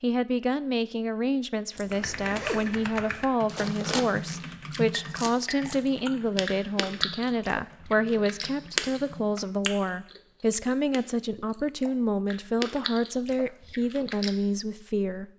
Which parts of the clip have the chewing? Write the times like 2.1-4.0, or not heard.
3.5-14.3.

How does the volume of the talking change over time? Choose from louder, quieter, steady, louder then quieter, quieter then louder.
steady.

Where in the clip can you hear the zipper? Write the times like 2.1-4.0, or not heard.
1.8-2.8.